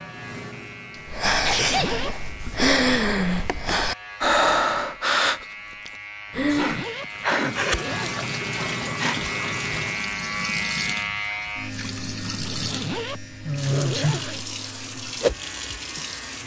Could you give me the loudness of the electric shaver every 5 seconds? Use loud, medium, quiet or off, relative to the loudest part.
medium, loud, loud, medium.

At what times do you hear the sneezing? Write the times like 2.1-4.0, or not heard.
1.4-2.2, 6.5-7.6, 13.4-14.2.